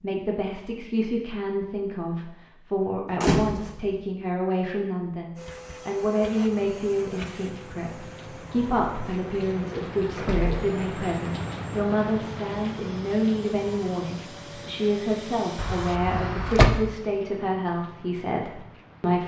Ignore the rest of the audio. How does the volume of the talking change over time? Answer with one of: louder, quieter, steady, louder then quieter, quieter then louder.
steady.